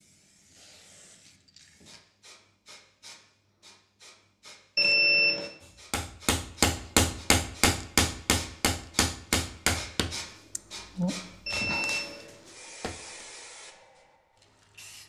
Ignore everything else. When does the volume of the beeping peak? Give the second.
5 s.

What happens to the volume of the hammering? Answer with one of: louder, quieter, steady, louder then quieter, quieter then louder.
quieter.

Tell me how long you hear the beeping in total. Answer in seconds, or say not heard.
2 s.